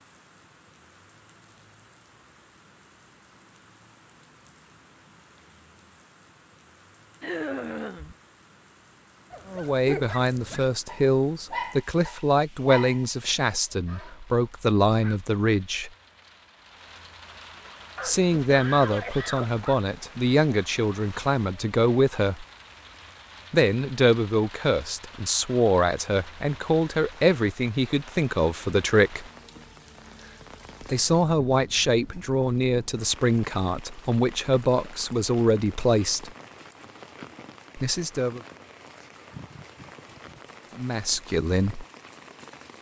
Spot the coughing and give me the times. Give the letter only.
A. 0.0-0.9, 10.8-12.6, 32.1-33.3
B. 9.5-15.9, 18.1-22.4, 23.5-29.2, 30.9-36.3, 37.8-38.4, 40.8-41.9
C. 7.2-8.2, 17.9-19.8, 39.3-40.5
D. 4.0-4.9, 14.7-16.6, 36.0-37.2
C.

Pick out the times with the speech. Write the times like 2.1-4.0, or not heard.
9.5-15.9, 18.1-22.4, 23.5-29.2, 30.9-36.3, 37.8-38.4, 40.8-41.9.